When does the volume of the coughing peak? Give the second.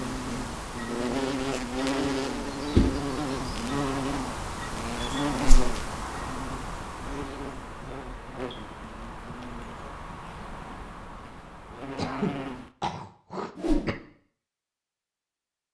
12 s.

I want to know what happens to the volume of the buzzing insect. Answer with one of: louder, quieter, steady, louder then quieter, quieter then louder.
quieter.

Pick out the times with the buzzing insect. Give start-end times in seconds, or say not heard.
0.0-12.7.